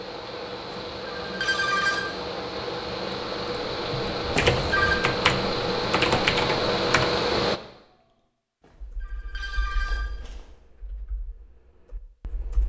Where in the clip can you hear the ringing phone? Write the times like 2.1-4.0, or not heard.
0.7-2.0, 4.3-5.0, 8.6-10.5.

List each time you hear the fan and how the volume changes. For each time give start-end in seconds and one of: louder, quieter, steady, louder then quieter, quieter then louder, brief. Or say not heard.
0.0-7.6 louder.